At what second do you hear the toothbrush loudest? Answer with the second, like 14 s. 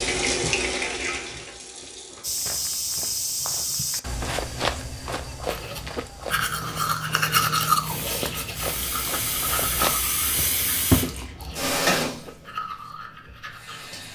8 s.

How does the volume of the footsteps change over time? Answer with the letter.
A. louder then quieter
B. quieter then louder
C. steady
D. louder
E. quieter
B.